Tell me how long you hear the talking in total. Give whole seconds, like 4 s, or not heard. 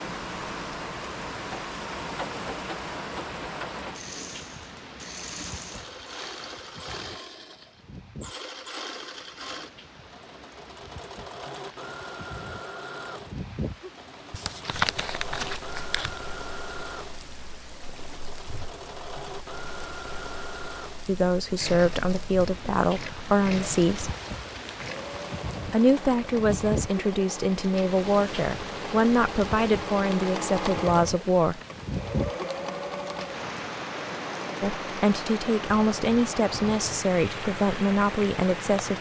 13 s.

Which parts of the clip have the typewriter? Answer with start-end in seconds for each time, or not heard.
not heard.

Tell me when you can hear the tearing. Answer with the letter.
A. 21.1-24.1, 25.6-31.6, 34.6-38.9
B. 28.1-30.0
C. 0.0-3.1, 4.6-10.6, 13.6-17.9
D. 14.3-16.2
D.